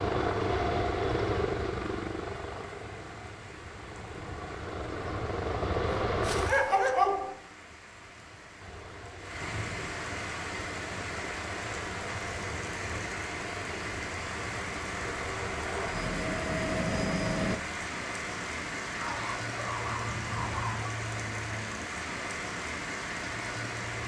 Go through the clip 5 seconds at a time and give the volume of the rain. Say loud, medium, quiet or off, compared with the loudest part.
quiet, medium, loud, loud, loud.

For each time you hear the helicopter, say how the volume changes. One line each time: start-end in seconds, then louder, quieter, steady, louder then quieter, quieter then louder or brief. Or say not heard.
0.0-6.5 quieter then louder
8.6-17.6 louder.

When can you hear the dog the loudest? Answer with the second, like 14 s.
7 s.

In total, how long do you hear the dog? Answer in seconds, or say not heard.
3 s.